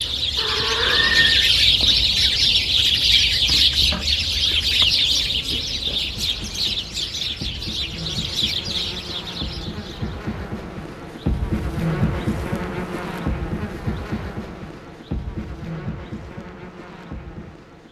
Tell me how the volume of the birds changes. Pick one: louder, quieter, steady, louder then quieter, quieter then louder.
quieter.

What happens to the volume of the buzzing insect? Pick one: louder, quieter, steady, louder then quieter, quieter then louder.
louder then quieter.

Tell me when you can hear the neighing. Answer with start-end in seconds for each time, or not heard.
0.3-1.5.